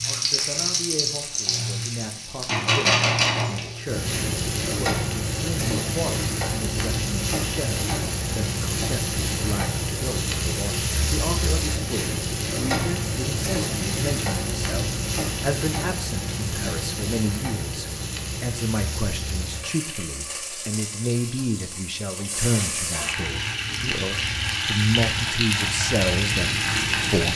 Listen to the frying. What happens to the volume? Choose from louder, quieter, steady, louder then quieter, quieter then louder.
quieter then louder.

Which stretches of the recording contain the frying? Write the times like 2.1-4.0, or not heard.
0.0-27.3.